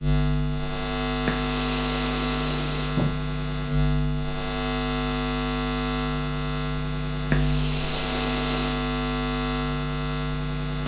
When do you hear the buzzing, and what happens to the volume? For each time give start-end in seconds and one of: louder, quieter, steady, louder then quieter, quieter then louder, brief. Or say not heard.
0.0-10.8 steady.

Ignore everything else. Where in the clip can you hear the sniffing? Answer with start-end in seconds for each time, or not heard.
1.2-3.1, 7.3-8.8.